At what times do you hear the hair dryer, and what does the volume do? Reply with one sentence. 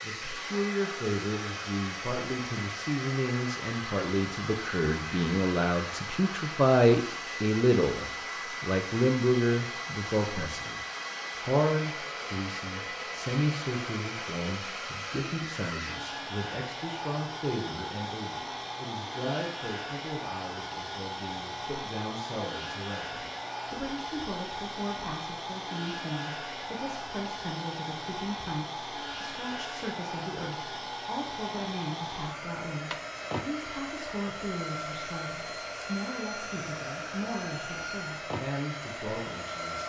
The hair dryer can be heard from 0.0 to 39.8 s, at a steady volume.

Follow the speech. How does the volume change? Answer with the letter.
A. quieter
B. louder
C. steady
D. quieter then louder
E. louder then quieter
A.